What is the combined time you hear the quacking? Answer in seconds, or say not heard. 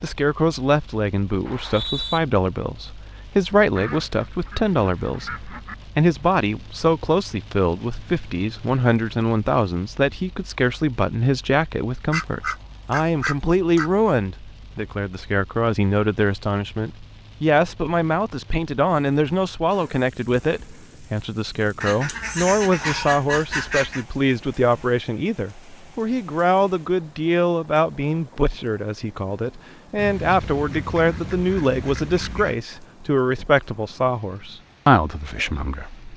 9 s.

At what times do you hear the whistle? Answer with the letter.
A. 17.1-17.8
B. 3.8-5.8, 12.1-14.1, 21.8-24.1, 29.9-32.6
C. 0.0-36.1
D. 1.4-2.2
D.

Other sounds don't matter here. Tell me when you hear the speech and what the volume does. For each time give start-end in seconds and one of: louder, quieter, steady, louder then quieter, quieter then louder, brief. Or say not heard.
0.0-36.1 steady.